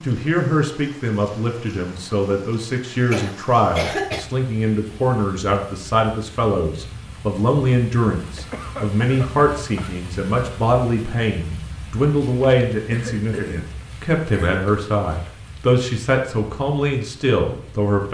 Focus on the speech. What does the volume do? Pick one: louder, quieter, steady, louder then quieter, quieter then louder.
steady.